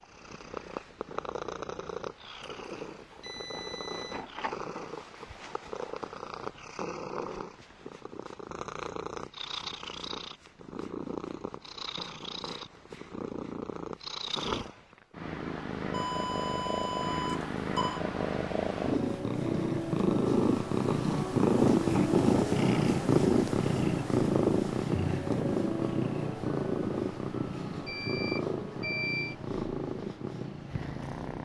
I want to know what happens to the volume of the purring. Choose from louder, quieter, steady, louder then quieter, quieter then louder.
louder then quieter.